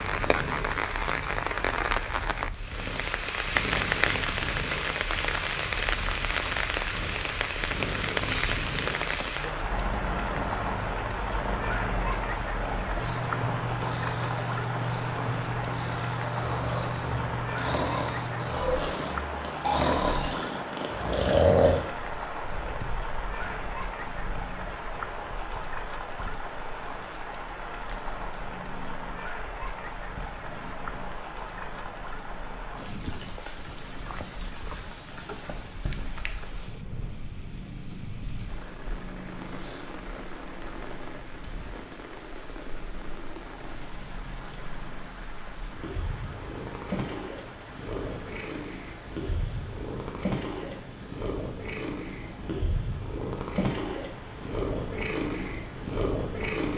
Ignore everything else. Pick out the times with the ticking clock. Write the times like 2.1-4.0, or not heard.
not heard.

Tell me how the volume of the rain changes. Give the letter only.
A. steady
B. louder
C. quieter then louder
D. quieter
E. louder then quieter
D.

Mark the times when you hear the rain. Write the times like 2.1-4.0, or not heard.
0.0-56.5.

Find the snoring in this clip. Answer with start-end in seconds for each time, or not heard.
16.3-22.8.